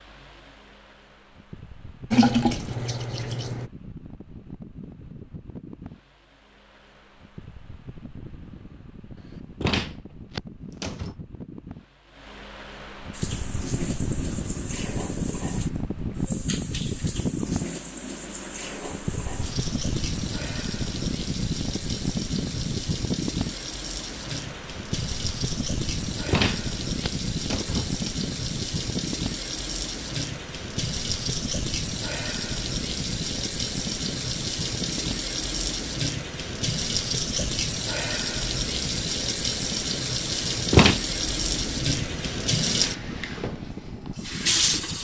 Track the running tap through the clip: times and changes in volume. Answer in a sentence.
The running tap can be heard briefly from 2.1 to 3.7 s; and from 13.1 to 45.0 s, getting louder.